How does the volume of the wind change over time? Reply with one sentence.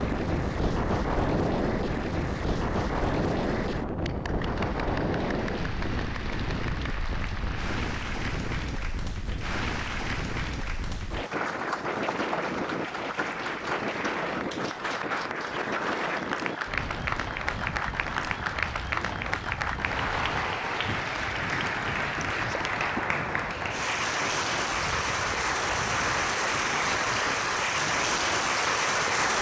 The volume of the wind goes down.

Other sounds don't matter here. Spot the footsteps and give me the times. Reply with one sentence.
The footsteps can't be heard in this clip.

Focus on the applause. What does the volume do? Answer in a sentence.
The loudness of the applause goes up.